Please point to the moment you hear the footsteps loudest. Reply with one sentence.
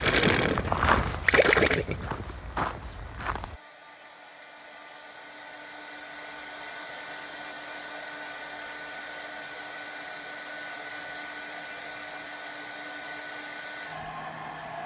The loudest moment of the footsteps is at 1 second.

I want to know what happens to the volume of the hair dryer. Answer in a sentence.
The volume of the hair dryer goes up.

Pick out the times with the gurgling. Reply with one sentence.
You can hear the gurgling from 0.0 to 2.4 s.